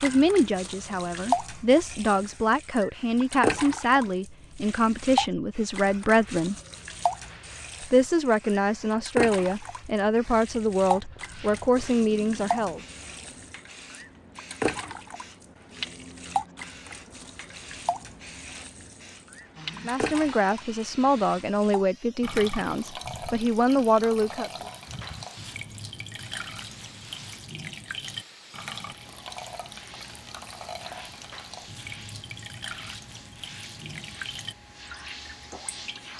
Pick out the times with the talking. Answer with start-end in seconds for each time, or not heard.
0.0-6.5, 7.8-12.8, 19.9-24.5.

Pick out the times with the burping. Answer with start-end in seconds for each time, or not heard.
not heard.